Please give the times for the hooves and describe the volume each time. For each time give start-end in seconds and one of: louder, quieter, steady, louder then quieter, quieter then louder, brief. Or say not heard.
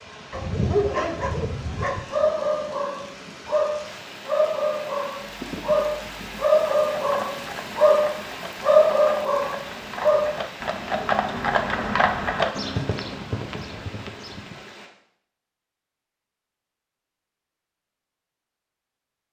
5.2-14.7 louder then quieter.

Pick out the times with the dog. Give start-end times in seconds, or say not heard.
0.3-10.3.